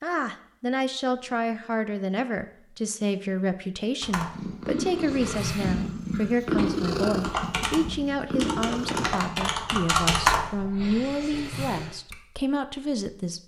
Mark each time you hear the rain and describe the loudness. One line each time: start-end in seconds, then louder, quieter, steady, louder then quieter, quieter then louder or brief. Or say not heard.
not heard.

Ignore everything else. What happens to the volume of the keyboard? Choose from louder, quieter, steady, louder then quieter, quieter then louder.
louder then quieter.